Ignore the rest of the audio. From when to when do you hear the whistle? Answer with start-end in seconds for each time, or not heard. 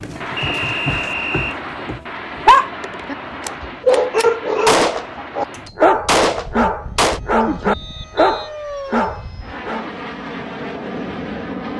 0.3-1.6, 7.7-8.5.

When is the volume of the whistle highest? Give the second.
1 s.